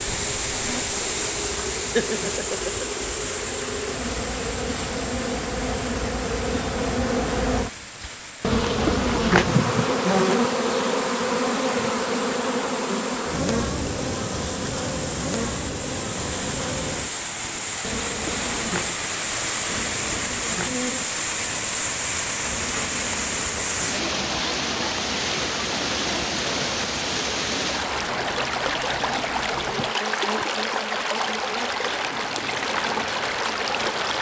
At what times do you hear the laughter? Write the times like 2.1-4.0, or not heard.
1.8-3.0.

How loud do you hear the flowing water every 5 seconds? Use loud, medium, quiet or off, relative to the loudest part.
loud, medium, medium, loud, loud, loud, loud.